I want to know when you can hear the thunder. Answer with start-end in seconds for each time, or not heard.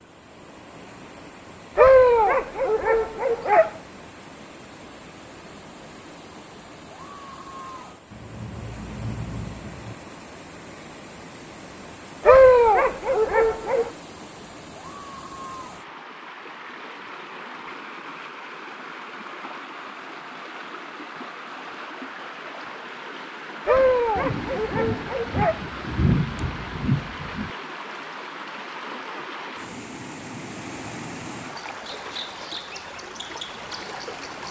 8.1-9.9, 24.1-27.5.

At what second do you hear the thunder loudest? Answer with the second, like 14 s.
26 s.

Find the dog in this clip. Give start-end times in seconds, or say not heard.
1.8-3.7, 12.2-13.9, 23.6-25.6.